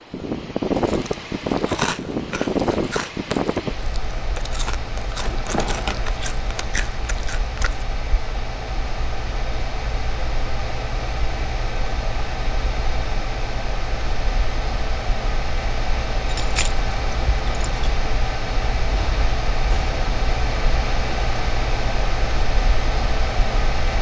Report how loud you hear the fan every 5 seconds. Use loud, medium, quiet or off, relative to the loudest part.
loud, medium, medium, loud, loud.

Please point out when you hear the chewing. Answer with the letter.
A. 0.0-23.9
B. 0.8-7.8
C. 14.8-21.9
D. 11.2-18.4
B.